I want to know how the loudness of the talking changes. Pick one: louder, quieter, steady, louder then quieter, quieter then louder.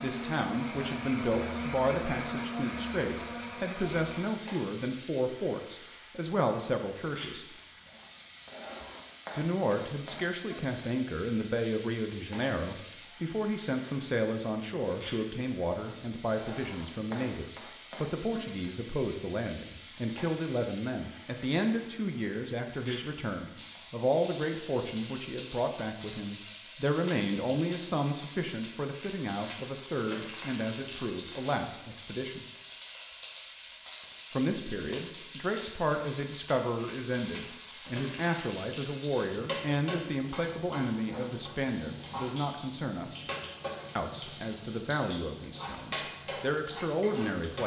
steady.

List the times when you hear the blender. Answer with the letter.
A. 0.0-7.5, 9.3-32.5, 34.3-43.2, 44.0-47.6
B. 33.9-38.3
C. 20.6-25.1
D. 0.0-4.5
D.